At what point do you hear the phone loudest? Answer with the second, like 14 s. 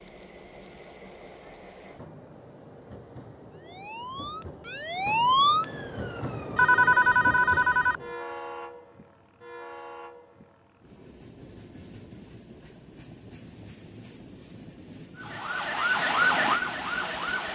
7 s.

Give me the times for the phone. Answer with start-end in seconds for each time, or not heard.
6.5-8.0.